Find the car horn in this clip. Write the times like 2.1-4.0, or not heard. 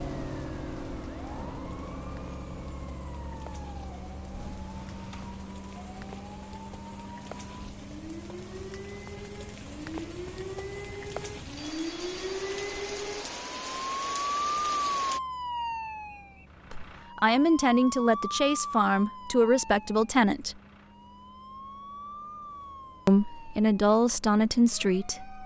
4.8-5.4.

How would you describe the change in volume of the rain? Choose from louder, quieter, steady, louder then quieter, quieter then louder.
louder.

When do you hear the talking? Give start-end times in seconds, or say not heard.
16.7-20.6, 23.1-25.4.